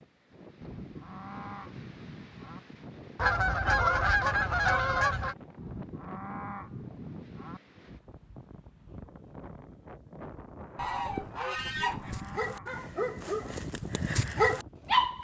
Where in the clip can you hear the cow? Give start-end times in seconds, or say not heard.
0.6-2.6, 5.5-7.6, 11.6-13.6.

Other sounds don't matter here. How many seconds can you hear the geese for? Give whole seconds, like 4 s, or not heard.
4 s.